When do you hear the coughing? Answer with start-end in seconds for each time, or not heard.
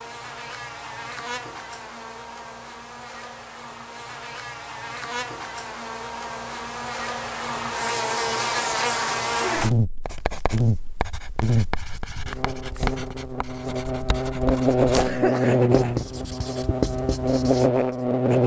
14.9-15.7.